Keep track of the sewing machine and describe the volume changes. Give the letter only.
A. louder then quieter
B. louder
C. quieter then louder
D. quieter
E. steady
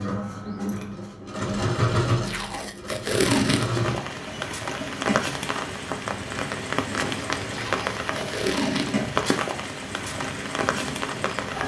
D.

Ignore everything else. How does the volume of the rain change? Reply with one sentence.
The loudness of the rain stays about the same.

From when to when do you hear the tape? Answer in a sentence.
The tape can be heard from 2.2 to 3.8 s and from 7.5 to 9.1 s.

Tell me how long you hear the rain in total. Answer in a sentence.
The rain can be heard for 8 seconds in total.